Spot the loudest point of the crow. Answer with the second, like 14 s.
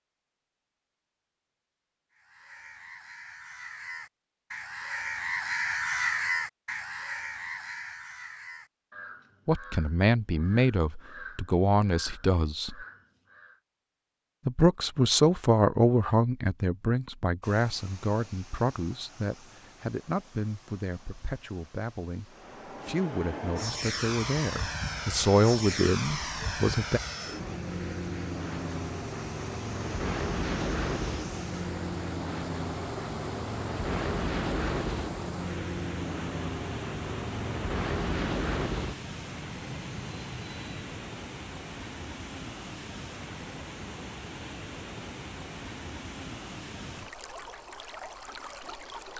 6 s.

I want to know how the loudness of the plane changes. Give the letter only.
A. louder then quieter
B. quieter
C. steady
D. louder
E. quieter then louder
C.